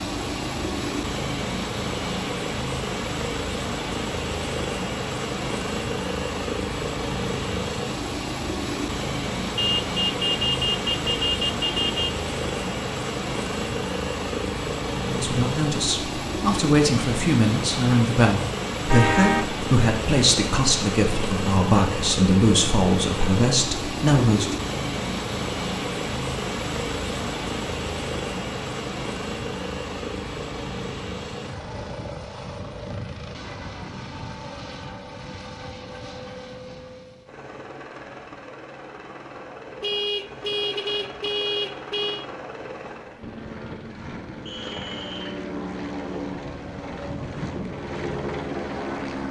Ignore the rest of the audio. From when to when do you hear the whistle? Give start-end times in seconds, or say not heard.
44.5-45.4.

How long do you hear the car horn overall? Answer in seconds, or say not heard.
6 s.